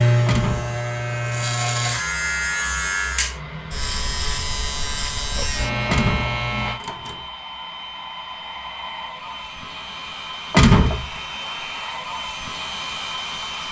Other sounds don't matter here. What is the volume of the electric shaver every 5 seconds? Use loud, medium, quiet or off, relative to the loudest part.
loud, loud, off.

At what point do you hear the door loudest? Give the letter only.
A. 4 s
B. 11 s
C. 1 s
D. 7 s
B.